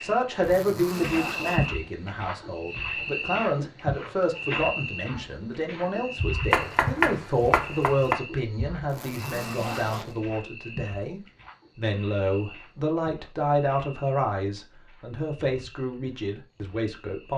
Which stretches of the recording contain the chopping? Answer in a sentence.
The chopping can be heard from 6.5 to 8.2 s.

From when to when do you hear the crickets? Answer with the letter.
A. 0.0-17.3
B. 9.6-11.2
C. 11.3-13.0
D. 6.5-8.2
A.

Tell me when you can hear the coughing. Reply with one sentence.
You can't hear the coughing here.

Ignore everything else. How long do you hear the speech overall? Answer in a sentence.
The speech can be heard for 17 seconds in total.